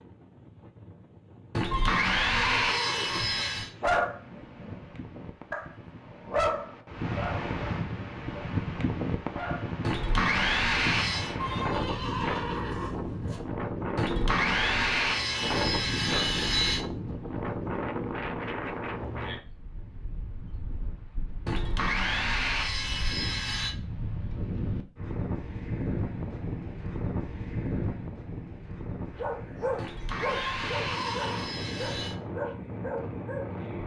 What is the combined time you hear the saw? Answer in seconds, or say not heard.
11 s.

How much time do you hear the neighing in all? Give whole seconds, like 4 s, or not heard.
5 s.